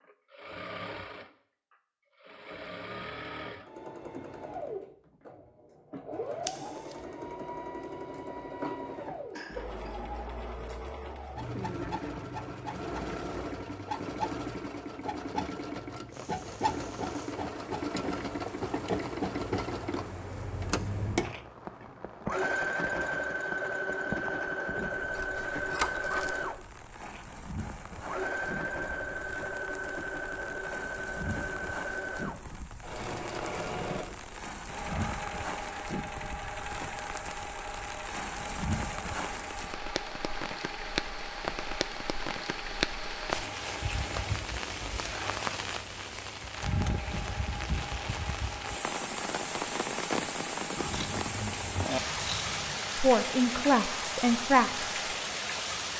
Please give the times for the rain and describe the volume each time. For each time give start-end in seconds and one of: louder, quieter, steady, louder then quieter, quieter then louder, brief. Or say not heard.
16.1-55.9 louder.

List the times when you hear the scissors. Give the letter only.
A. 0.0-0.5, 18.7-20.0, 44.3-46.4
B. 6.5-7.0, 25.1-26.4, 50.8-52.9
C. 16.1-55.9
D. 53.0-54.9
B.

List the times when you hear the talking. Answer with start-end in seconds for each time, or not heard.
53.0-54.9.